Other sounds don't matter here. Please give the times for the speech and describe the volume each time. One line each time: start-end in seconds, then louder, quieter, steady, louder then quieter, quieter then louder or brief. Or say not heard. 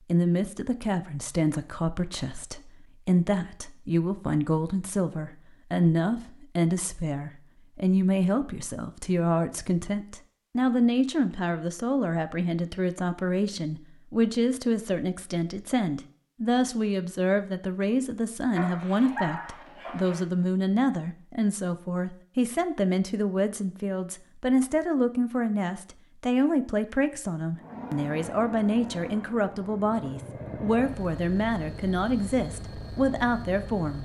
0.1-33.9 steady.